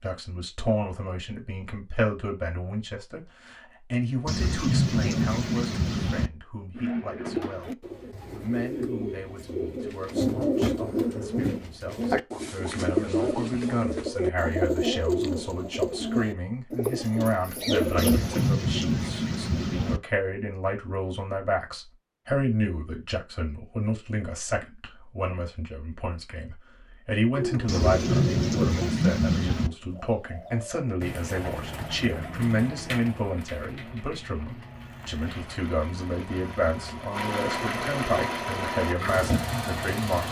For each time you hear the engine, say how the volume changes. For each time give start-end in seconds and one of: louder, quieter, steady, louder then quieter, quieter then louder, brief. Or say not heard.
34.6-40.2 louder.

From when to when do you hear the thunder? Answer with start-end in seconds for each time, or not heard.
4.2-6.3, 17.9-20.0, 27.6-29.7.